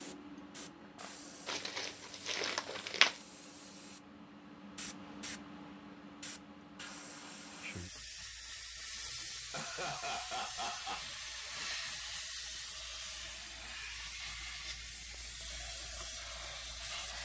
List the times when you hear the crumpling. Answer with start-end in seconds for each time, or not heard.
1.4-3.2.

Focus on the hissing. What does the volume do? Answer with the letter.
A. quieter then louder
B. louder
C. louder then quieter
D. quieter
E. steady
B.